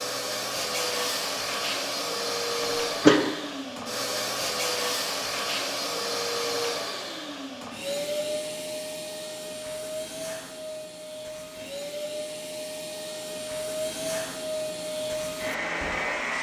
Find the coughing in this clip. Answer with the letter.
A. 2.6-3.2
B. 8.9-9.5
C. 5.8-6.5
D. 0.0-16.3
A.